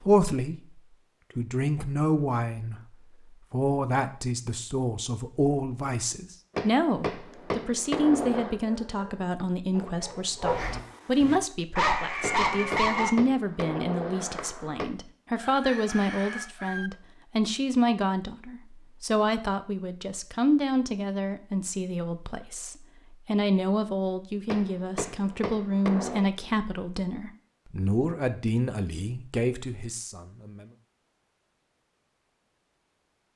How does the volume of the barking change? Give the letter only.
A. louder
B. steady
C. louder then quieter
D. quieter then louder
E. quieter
A.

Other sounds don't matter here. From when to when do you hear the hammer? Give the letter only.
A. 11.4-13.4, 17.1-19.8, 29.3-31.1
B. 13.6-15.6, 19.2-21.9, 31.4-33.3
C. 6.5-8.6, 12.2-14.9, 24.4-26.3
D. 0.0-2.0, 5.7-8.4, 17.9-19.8
C.